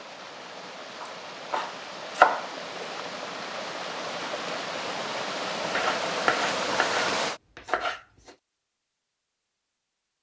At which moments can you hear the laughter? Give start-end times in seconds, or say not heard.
not heard.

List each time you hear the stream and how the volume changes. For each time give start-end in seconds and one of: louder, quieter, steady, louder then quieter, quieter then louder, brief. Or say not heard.
0.0-7.4 louder.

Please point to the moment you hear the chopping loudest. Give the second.
2 s.